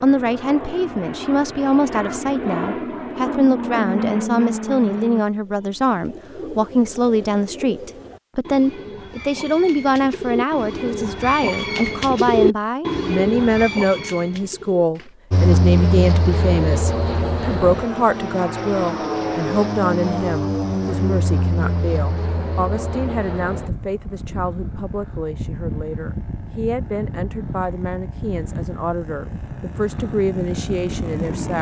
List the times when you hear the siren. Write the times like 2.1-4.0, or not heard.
not heard.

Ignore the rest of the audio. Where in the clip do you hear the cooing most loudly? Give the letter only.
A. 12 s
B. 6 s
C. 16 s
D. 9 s
A.